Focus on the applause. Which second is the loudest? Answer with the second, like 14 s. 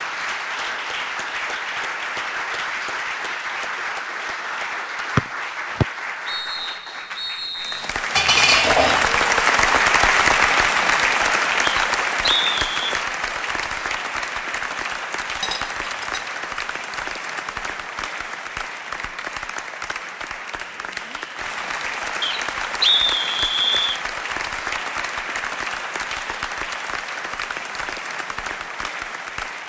10 s.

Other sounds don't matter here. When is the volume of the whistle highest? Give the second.
23 s.